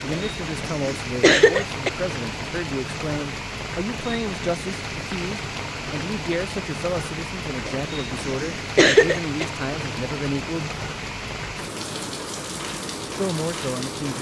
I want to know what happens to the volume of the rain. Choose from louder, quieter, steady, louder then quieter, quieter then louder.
steady.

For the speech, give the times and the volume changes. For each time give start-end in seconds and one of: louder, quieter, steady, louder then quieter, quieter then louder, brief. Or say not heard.
0.0-10.7 steady
13.2-14.1 brief.